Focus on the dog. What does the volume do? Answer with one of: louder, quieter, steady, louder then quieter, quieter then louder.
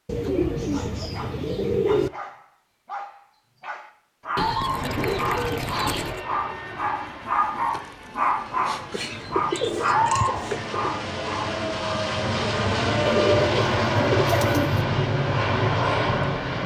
louder.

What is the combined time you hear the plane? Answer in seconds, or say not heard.
12 s.